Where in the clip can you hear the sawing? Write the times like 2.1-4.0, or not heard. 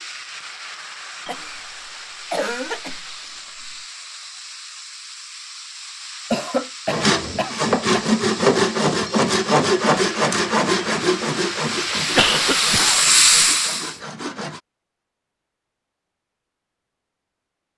6.9-14.6.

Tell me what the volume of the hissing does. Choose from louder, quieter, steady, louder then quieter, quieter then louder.
louder.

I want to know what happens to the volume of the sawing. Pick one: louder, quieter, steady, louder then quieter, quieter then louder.
quieter.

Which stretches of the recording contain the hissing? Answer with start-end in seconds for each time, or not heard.
0.0-14.0.